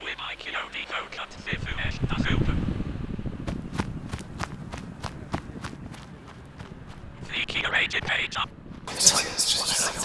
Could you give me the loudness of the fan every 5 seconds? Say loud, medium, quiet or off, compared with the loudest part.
loud, medium.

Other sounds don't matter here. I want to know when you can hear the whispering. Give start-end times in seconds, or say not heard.
0.0-2.5, 7.2-10.0.